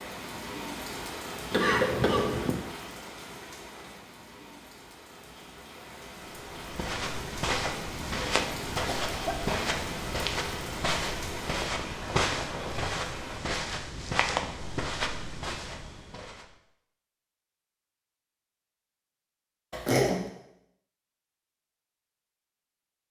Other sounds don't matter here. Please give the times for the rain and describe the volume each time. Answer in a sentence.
You can hear the rain from 0.0 to 13.4 s, getting quieter then louder.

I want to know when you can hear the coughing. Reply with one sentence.
The coughing can be heard from 1.5 to 2.6 s, from 8.8 to 9.8 s and from 19.7 to 20.2 s.